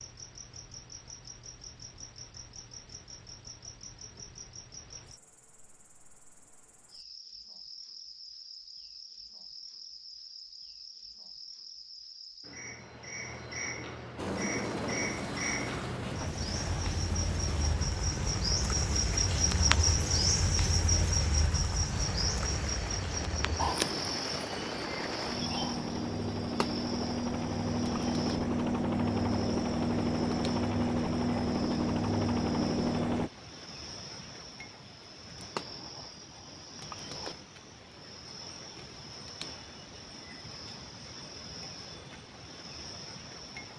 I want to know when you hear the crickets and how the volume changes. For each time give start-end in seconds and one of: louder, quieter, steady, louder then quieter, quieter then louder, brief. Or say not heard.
0.0-43.7 louder then quieter.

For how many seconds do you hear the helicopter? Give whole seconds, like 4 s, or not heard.
19 s.